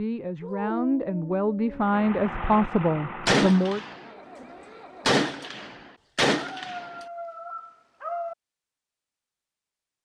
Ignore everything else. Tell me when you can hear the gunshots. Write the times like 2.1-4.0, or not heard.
3.2-4.4, 5.0-7.0.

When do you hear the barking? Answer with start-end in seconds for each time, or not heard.
0.4-2.1, 6.3-8.3.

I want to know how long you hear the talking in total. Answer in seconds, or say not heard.
4 s.